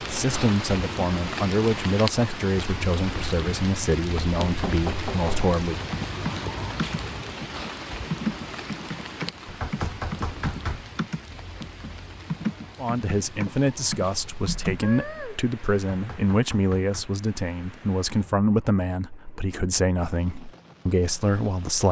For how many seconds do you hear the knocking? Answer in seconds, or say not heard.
4 s.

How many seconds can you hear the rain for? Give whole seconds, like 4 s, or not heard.
22 s.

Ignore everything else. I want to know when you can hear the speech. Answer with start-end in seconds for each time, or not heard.
0.1-5.8, 12.8-21.8.